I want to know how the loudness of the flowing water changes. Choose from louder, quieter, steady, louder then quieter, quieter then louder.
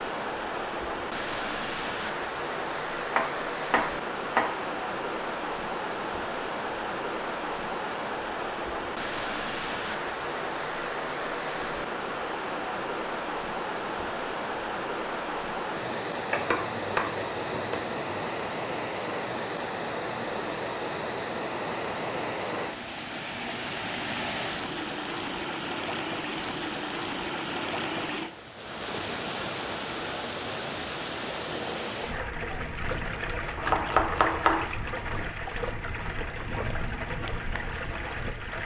steady.